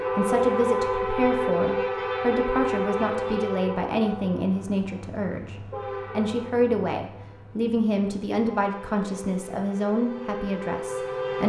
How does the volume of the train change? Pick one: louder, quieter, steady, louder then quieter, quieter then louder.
quieter then louder.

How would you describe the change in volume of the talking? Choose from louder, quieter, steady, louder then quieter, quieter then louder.
steady.